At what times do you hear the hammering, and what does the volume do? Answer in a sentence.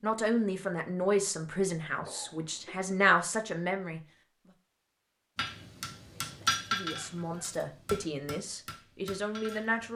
You can hear the hammering from 5.3 to 9.9 s, getting quieter.